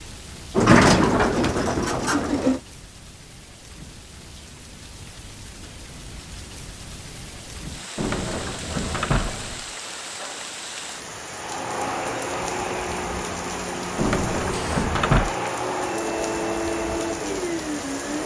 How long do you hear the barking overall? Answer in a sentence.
You can't hear the barking here.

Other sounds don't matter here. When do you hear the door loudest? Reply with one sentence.
The volume of the door peaks at 1 second.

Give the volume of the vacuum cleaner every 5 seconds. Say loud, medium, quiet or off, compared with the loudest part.
off, off, loud, loud.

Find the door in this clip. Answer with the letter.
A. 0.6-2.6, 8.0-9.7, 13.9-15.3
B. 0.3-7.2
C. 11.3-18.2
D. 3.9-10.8
A.